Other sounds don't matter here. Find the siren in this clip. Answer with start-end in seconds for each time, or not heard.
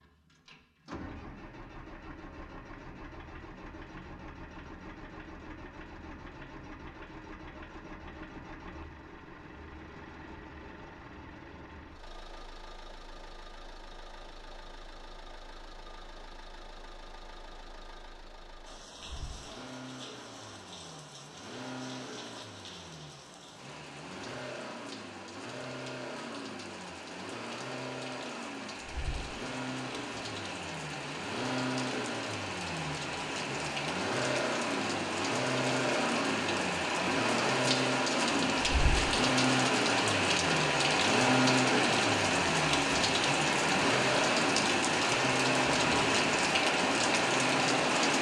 not heard.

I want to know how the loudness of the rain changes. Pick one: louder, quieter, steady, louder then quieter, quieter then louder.
louder.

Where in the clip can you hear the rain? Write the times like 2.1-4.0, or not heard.
18.6-48.1.